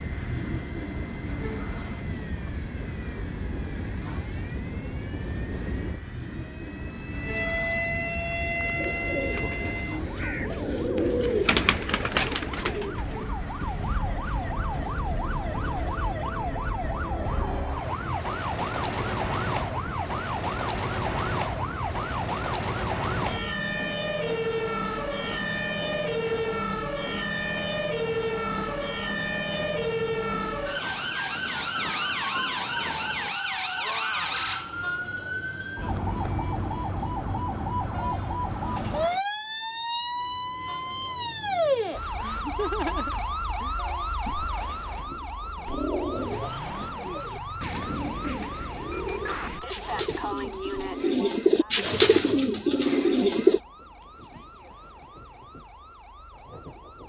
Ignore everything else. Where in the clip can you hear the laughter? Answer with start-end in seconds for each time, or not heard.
42.0-43.8.